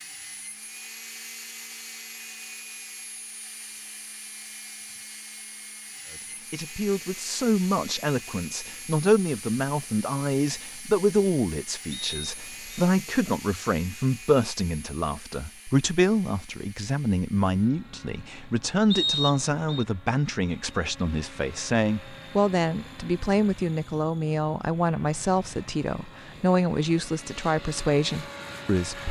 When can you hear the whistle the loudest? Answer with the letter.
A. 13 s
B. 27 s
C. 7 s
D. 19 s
D.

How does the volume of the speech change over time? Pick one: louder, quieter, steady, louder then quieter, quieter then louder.
steady.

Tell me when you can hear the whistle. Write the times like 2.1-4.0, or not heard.
11.9-12.8, 18.9-19.9.